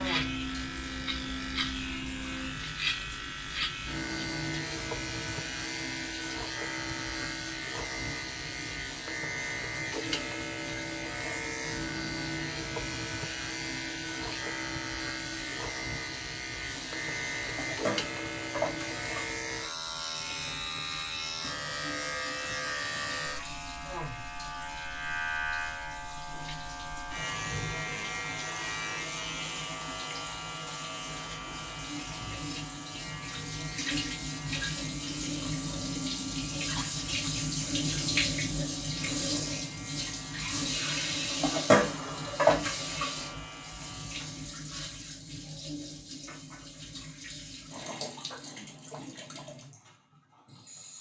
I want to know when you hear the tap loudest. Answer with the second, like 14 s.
42 s.